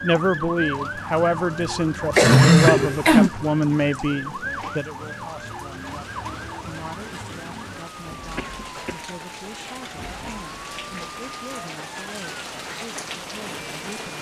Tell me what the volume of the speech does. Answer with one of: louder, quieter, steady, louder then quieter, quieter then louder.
quieter.